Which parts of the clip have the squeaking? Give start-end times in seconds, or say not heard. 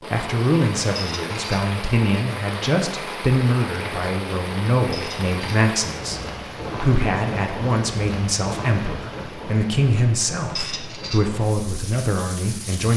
0.9-1.6, 4.9-5.6, 10.6-11.2.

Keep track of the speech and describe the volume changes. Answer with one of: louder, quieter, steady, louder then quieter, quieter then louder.
steady.